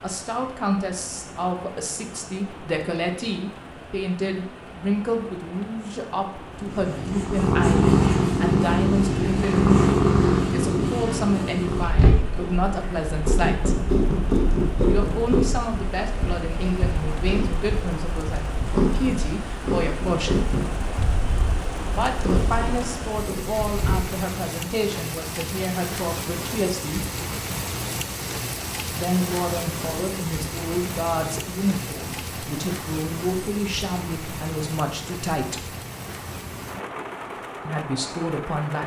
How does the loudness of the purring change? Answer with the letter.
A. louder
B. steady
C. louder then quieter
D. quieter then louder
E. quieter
E.